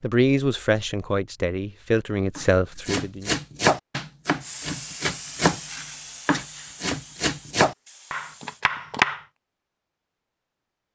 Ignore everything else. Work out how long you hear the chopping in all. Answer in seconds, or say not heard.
7 s.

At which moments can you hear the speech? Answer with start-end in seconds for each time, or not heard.
0.0-3.4.